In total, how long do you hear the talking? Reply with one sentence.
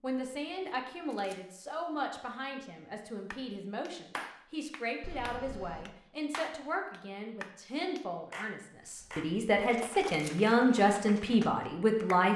The talking can be heard for 12 seconds in total.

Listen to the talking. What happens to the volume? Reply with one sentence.
The volume of the talking goes up.